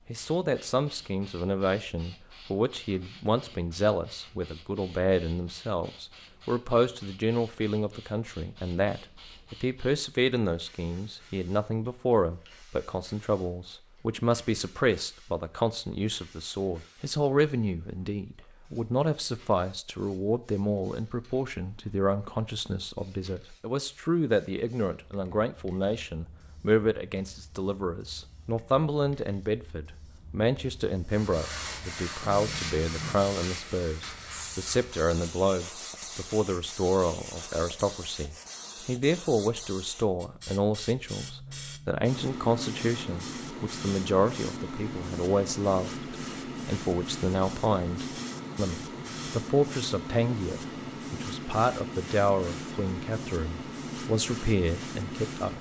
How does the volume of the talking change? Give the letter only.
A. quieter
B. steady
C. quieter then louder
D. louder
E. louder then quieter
B.